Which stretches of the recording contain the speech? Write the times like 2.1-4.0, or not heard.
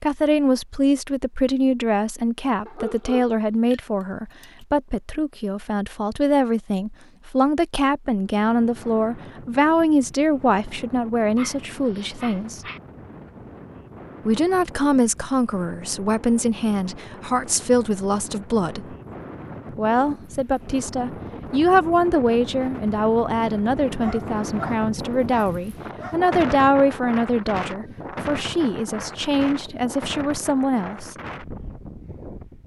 0.0-12.6, 14.2-18.9, 19.8-31.1.